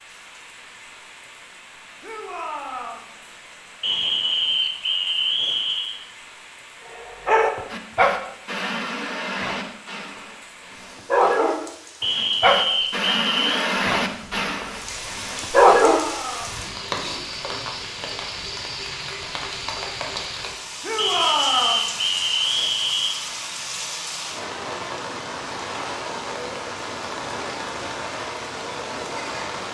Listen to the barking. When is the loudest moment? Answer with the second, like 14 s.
16 s.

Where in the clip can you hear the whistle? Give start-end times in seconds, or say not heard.
3.8-6.0, 12.0-13.7, 20.9-23.1.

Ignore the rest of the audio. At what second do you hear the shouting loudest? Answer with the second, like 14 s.
21 s.